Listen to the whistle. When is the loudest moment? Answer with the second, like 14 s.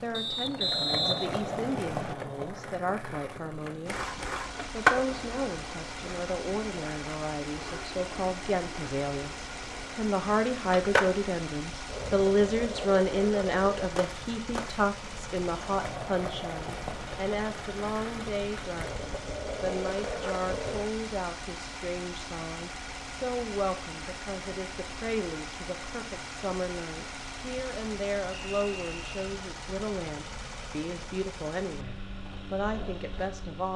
1 s.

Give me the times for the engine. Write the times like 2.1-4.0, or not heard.
3.9-33.7.